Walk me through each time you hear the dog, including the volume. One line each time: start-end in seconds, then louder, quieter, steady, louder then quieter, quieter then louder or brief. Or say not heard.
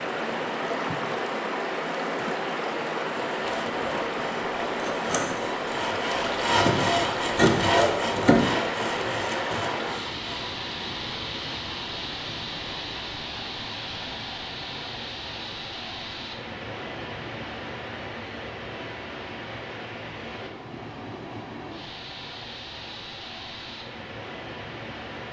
not heard.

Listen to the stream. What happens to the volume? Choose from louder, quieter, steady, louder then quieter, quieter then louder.
quieter.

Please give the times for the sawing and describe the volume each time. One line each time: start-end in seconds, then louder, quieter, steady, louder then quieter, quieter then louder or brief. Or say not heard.
3.3-10.6 louder then quieter.